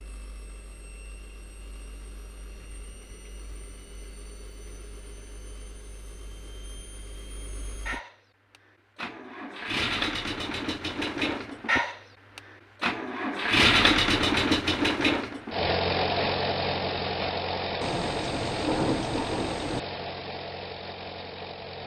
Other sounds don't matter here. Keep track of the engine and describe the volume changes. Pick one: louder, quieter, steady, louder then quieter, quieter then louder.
louder then quieter.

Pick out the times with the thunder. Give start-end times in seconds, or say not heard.
17.8-19.8.